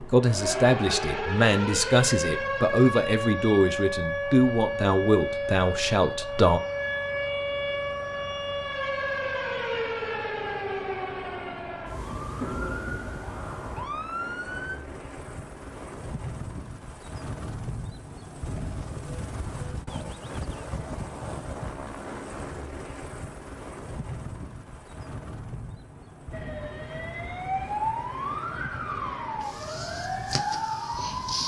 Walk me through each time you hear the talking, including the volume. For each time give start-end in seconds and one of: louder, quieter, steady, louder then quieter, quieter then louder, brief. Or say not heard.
0.0-6.6 steady.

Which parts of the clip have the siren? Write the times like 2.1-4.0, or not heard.
0.0-14.8, 26.3-31.4.